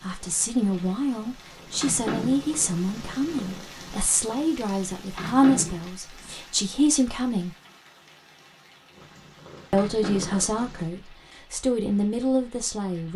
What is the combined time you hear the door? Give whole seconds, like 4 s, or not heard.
2 s.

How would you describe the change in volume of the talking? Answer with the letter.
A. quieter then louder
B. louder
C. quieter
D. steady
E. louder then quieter
D.